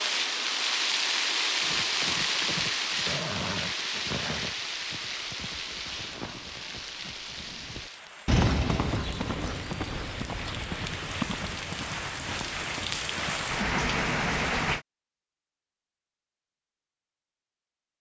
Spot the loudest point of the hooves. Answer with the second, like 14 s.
8 s.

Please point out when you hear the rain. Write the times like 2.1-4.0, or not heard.
0.0-14.8.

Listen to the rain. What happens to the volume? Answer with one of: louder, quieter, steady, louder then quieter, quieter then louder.
quieter then louder.